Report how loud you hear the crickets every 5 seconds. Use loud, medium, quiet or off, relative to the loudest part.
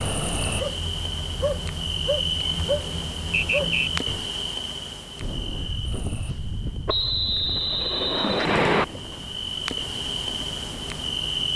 loud, medium, loud.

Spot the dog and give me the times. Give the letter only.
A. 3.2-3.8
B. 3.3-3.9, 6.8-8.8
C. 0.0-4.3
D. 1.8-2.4
C.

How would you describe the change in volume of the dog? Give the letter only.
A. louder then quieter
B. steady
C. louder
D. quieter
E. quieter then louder
B.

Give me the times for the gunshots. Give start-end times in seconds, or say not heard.
8.4-9.1.